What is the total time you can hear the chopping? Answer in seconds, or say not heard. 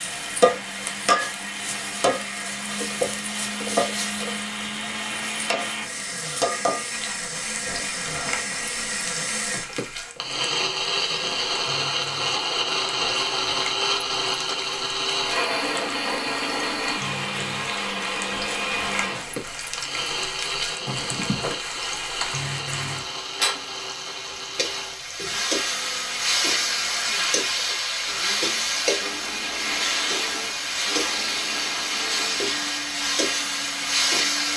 not heard.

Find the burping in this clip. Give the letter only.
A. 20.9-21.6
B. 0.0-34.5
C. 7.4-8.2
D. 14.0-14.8
A.